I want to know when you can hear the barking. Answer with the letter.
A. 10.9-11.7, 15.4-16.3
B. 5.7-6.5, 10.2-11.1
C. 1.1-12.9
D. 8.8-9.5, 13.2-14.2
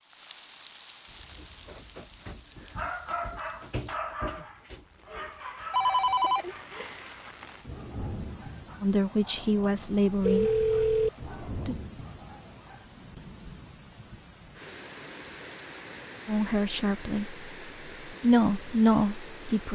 C.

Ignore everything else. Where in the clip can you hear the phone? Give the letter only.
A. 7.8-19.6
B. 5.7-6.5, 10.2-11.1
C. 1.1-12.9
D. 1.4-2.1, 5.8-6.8
B.